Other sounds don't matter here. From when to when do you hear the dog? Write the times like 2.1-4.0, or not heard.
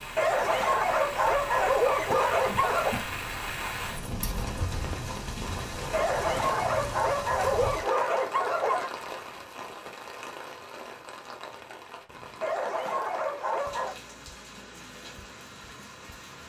0.1-3.0, 5.9-8.9, 12.4-13.9.